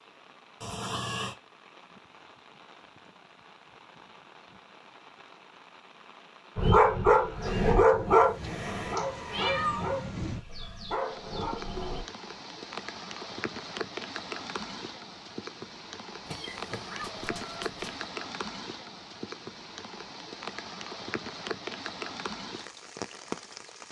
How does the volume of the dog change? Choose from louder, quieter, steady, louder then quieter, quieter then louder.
quieter.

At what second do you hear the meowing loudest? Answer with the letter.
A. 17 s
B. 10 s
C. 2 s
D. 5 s
B.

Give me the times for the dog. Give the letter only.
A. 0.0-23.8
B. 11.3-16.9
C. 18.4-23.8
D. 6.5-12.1
D.